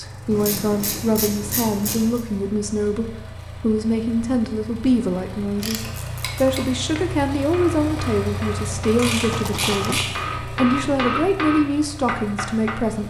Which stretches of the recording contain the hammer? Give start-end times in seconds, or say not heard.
7.0-12.8.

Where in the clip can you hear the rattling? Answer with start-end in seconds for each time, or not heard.
9.3-10.1.